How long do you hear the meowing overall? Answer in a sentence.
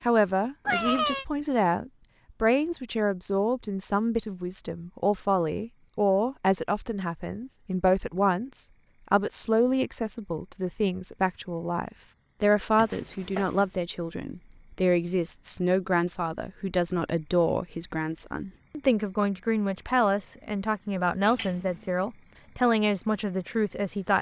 The meowing can be heard for 2 seconds in total.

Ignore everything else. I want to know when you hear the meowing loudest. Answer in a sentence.
The loudest moment of the meowing is at 1 second.